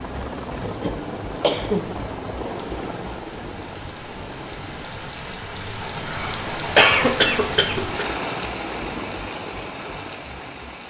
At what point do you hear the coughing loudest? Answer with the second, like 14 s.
7 s.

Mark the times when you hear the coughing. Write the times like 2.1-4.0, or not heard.
0.6-1.9, 6.0-8.1.